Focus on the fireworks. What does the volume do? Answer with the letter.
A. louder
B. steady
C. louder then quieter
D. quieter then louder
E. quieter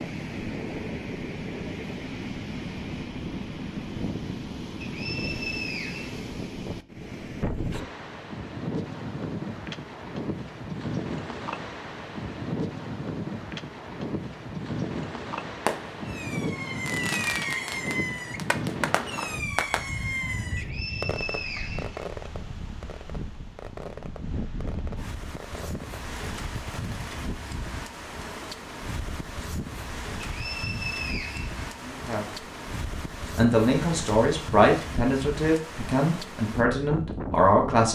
E.